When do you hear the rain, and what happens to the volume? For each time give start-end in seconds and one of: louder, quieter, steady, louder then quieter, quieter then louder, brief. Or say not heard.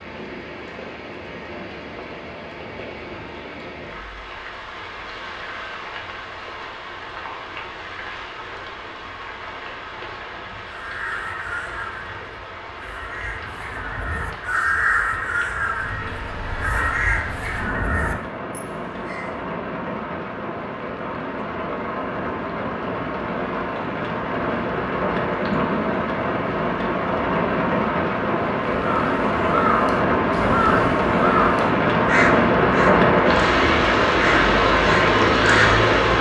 0.0-36.1 louder.